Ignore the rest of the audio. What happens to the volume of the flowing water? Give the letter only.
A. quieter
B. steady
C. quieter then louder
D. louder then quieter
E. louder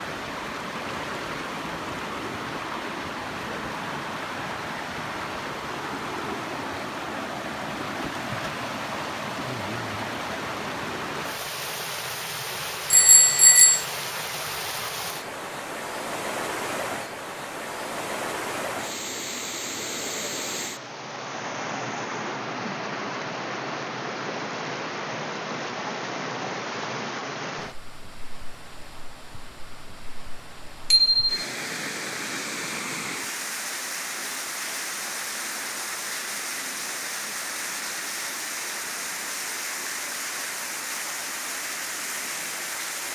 B.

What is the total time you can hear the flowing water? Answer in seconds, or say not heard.
43 s.